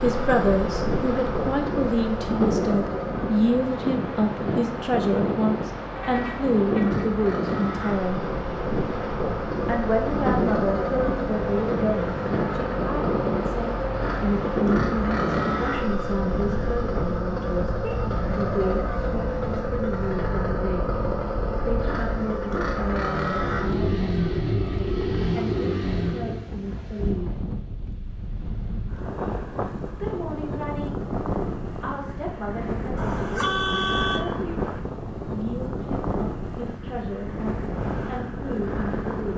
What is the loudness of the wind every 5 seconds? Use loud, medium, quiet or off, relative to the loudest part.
loud, loud, loud, medium, medium, medium, loud, loud.